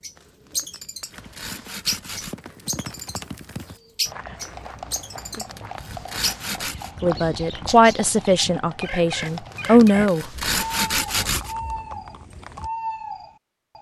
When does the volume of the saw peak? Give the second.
11 s.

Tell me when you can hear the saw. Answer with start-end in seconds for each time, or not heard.
0.1-2.4, 4.9-6.9, 9.2-11.6.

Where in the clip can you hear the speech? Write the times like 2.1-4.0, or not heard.
7.0-10.2.